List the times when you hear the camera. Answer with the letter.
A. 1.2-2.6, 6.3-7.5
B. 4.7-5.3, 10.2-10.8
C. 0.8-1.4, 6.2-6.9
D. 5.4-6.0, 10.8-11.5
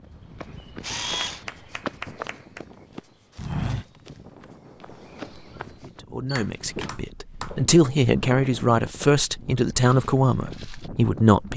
C.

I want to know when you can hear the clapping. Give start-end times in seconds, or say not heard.
1.2-2.6, 6.3-7.5.